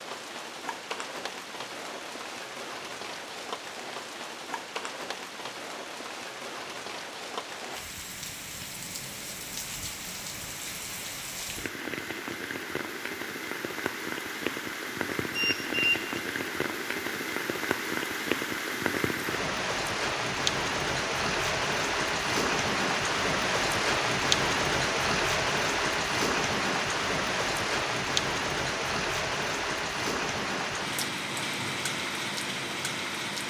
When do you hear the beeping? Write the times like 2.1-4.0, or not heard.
15.3-16.0.